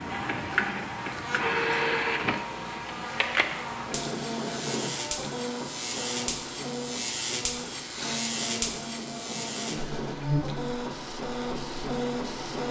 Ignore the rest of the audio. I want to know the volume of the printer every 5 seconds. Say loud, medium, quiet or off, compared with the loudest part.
loud, medium, loud.